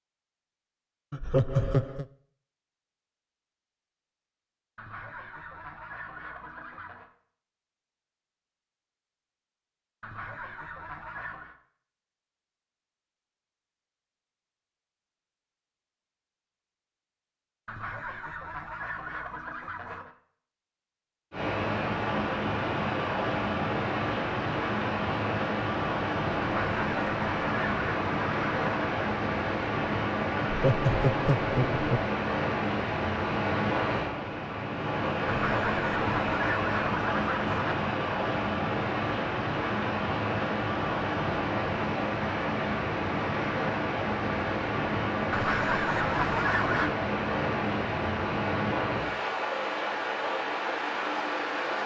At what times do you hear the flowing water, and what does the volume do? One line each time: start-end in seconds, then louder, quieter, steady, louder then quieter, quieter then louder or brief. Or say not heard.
21.3-51.8 steady.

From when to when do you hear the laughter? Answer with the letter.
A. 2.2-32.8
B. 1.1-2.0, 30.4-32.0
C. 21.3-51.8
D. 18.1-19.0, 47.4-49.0
B.